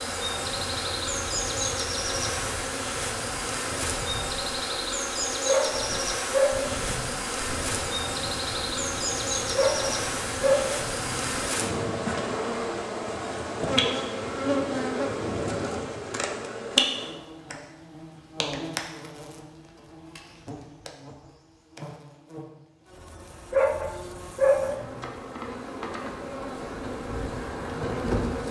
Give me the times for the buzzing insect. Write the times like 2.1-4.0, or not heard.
0.0-28.4.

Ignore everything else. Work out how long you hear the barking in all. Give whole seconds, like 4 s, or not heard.
5 s.